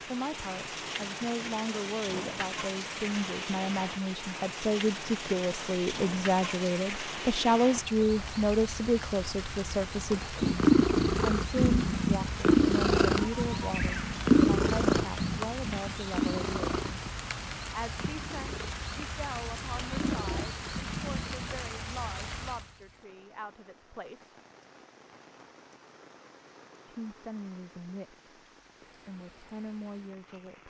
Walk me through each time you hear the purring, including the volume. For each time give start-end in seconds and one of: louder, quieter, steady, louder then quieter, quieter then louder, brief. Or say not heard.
10.4-21.6 quieter then louder.